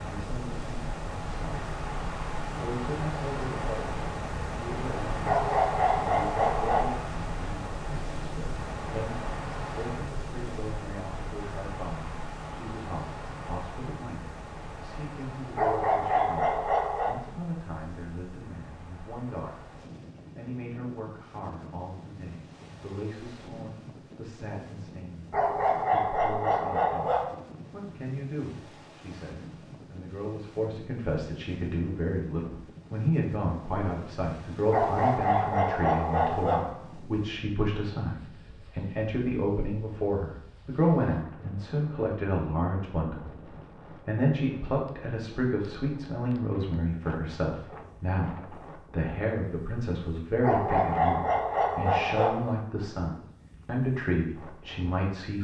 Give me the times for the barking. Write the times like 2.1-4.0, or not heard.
5.2-7.0, 15.6-17.1, 25.3-27.3, 34.7-36.7, 50.4-52.4.